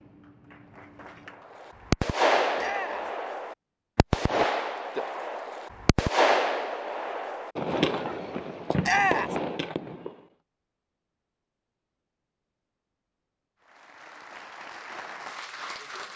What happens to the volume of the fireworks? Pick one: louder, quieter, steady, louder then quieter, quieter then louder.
quieter.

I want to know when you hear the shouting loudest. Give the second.
9 s.